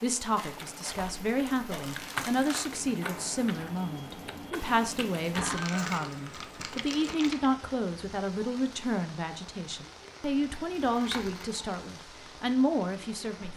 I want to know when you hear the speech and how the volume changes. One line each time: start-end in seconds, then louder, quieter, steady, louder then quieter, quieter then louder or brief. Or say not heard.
0.0-13.5 steady.